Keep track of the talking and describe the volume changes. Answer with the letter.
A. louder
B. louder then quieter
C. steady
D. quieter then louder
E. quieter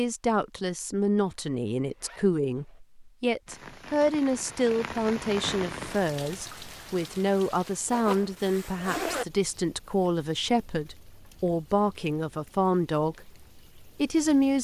C.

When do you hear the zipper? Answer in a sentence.
The zipper can be heard from 1.2 to 2.8 s and from 7.9 to 9.2 s.